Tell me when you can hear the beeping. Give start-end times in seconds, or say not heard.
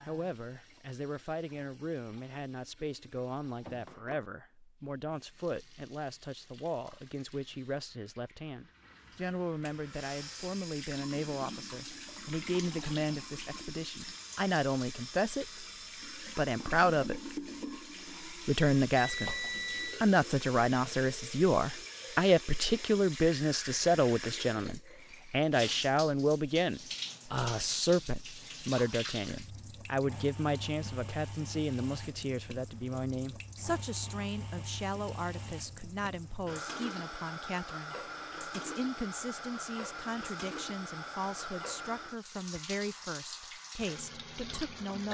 18.9-20.0.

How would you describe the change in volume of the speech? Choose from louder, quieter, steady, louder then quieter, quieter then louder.
louder then quieter.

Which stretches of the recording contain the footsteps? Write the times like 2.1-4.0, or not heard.
not heard.